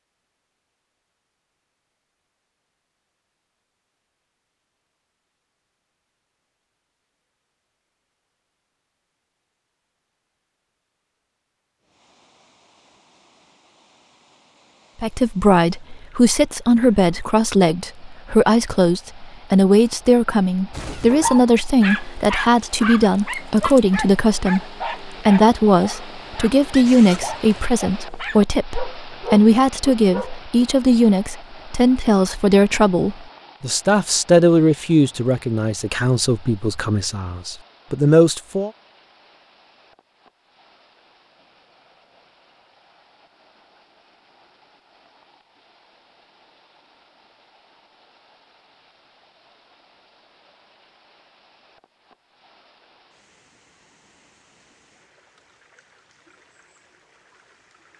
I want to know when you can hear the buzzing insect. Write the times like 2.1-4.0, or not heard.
not heard.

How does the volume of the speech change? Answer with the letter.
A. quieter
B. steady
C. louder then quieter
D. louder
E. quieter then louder
B.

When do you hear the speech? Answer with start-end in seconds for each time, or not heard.
15.0-38.7.